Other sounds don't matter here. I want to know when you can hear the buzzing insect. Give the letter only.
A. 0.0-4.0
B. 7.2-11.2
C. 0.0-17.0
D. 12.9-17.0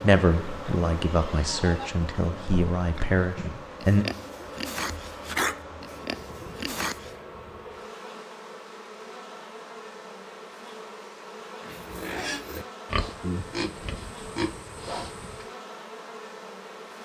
C.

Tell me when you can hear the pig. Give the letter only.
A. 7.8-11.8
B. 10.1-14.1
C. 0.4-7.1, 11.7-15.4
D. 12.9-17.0
C.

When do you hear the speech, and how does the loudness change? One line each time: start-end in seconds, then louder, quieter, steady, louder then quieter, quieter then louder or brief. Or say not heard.
0.0-4.0 steady.